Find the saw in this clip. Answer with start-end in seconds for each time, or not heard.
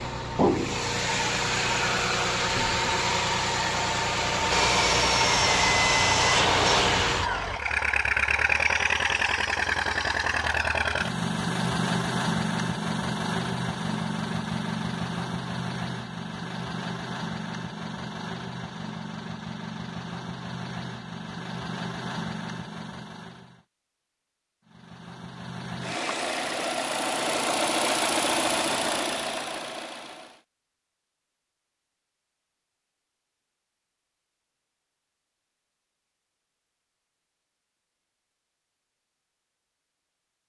4.5-7.6.